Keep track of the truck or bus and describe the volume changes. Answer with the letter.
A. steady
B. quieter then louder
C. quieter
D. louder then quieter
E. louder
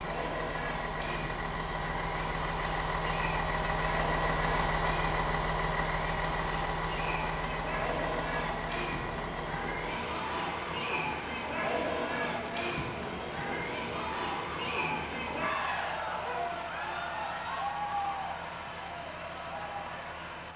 C.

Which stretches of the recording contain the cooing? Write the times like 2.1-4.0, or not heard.
not heard.